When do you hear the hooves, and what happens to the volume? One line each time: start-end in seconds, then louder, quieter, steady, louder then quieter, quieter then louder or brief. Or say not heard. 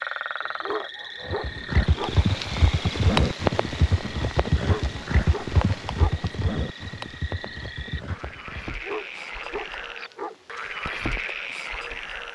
1.2-8.8 quieter.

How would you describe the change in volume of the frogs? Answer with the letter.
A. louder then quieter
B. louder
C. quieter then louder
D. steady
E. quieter
C.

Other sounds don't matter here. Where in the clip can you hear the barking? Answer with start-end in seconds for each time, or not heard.
0.4-2.1, 4.6-6.2, 8.7-10.3.